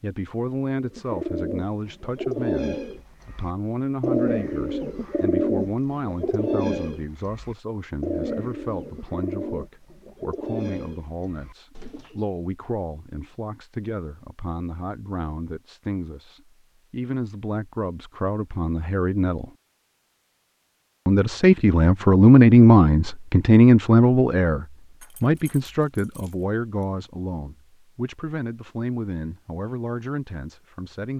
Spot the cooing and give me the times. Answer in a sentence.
You can hear the cooing from 0.8 to 12.2 s.